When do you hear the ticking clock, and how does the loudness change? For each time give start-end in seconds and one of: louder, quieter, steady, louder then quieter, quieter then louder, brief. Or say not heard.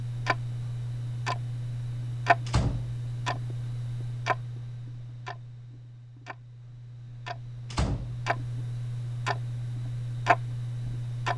0.0-11.3 quieter then louder.